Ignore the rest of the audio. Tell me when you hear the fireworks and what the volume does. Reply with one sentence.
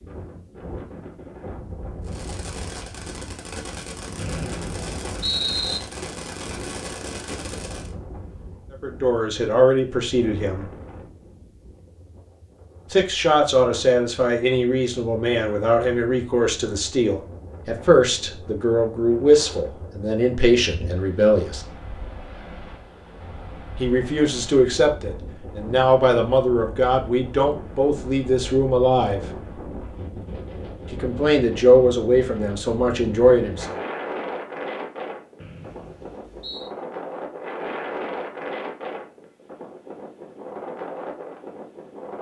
The fireworks can be heard from 2.0 to 8.0 s, at a steady volume.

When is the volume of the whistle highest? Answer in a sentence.
The volume of the whistle peaks at 5 seconds.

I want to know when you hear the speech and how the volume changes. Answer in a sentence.
You can hear the speech briefly from 8.7 to 10.7 s; from 12.9 to 21.6 s, at a steady volume; from 23.8 to 29.2 s, at a steady volume; and briefly from 30.9 to 33.8 s.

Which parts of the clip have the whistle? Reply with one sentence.
The whistle can be heard from 4.2 to 5.8 s and from 35.4 to 36.7 s.